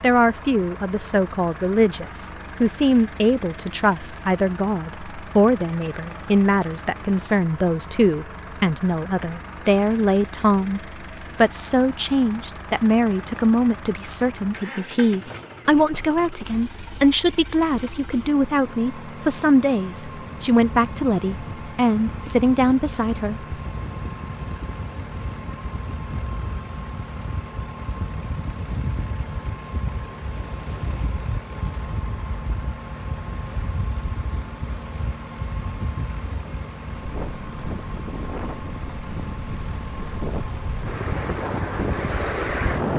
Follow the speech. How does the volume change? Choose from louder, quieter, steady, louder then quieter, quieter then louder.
steady.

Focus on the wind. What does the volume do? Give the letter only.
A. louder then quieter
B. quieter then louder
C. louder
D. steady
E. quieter
C.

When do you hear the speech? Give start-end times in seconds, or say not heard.
0.0-23.6.